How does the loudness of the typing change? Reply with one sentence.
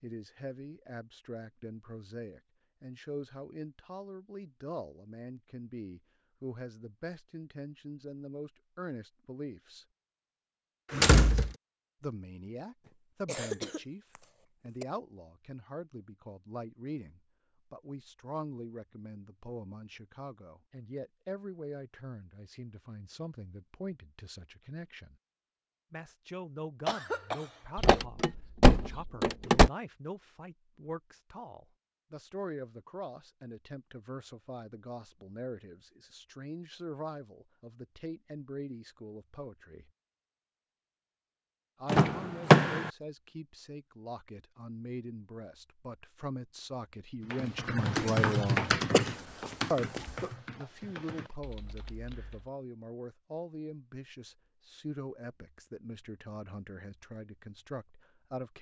The volume of the typing goes down.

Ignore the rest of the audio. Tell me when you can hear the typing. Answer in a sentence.
You can hear the typing from 47.2 to 52.5 s.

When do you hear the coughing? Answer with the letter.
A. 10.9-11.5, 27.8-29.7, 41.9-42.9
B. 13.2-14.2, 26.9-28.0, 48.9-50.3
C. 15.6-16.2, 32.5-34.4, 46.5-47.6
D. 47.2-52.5
B.